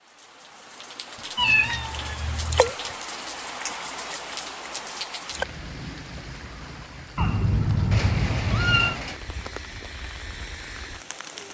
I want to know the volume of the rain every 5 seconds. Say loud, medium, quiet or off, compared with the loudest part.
loud, loud, medium.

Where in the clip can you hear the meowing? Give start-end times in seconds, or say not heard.
1.1-2.7, 7.2-8.9.